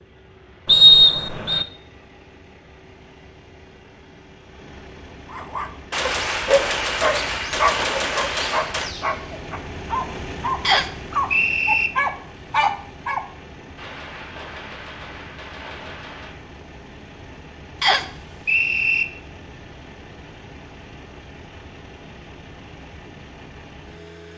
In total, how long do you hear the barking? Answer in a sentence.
You can hear the barking for 8 seconds altogether.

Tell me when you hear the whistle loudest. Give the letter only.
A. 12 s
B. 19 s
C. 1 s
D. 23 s
C.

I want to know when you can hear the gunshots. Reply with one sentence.
You can hear the gunshots from 5.9 to 8.9 s and from 13.8 to 16.4 s.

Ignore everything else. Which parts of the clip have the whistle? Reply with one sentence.
The whistle can be heard from 0.7 to 1.6 s, from 10.7 to 11.9 s and from 17.8 to 19.1 s.